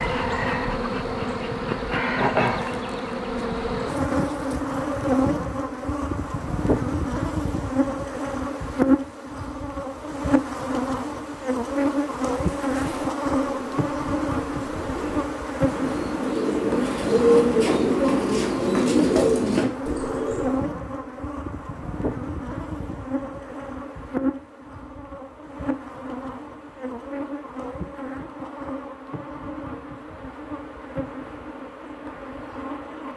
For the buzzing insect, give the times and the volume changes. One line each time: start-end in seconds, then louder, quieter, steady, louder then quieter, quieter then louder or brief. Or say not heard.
0.0-33.1 quieter.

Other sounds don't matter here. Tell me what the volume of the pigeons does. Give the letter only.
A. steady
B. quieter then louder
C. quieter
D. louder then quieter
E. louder
E.